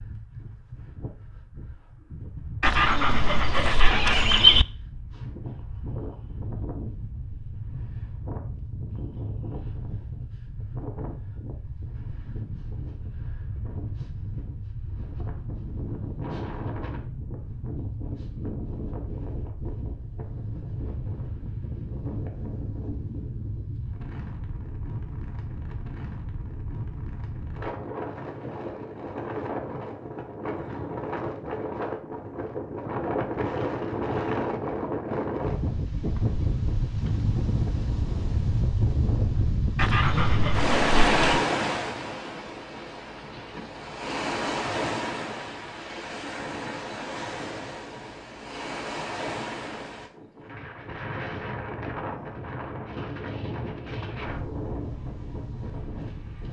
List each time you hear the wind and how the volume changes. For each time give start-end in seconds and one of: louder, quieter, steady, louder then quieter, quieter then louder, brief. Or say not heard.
0.0-56.4 louder then quieter.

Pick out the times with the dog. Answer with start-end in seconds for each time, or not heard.
2.6-4.7, 39.8-41.5.